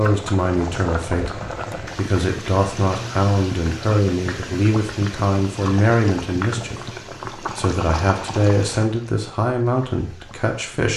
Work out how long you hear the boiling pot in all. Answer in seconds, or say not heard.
11 s.